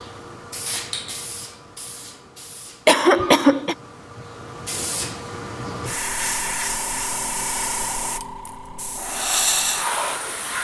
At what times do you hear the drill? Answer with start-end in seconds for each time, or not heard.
not heard.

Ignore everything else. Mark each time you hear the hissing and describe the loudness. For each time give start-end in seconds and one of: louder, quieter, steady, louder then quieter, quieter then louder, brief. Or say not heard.
0.0-10.5 louder.